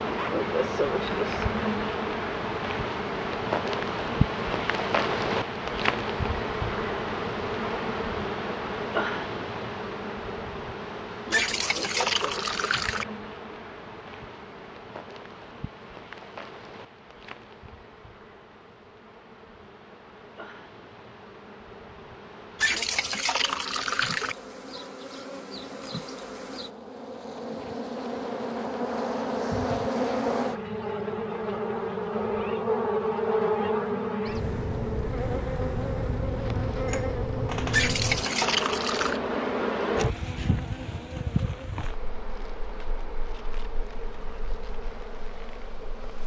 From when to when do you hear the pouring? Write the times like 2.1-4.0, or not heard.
11.3-13.1, 22.6-24.4, 37.7-39.2.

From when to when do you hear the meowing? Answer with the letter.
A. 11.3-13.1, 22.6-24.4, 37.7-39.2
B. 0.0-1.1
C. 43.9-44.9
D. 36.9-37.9
D.